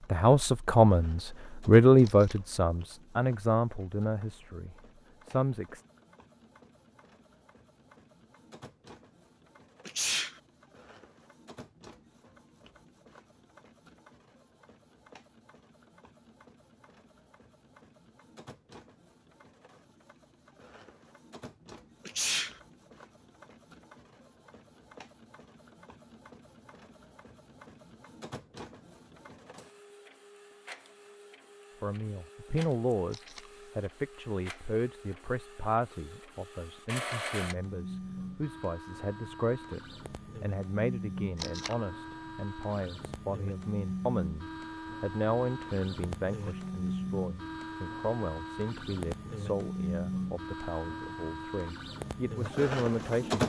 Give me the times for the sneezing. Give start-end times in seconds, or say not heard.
9.8-10.4, 22.1-22.6, 46.1-46.6.